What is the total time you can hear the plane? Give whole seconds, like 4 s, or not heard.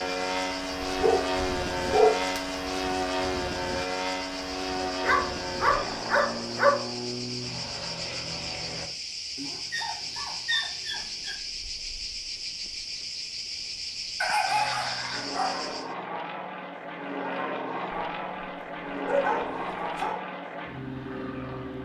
16 s.